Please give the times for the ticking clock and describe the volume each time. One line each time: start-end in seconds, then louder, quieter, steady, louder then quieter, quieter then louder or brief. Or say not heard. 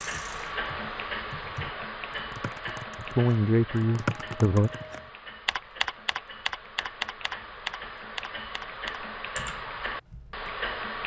0.0-11.0 quieter then louder.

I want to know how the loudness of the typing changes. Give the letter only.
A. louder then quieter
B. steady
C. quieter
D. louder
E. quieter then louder
A.